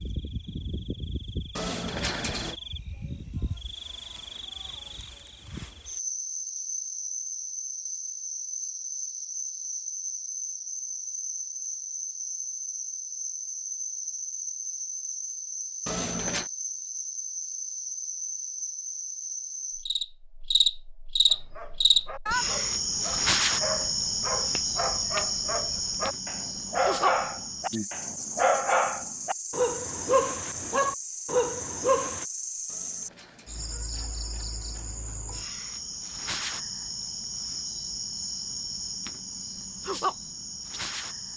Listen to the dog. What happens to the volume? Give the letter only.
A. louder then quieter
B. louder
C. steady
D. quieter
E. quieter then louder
B.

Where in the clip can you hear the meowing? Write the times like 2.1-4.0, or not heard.
1.6-2.5, 15.8-16.5, 32.6-34.0.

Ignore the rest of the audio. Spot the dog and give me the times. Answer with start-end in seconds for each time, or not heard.
21.3-32.2.